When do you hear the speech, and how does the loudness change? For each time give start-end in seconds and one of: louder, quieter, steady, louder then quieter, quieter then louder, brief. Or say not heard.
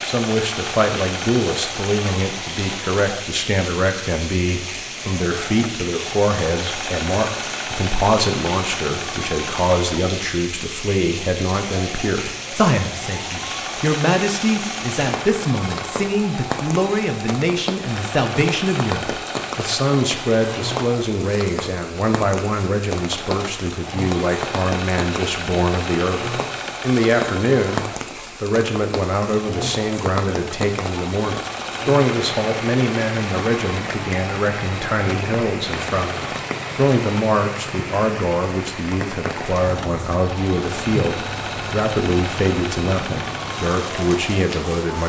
0.0-45.0 steady.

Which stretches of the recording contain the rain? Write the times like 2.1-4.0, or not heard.
0.0-45.0.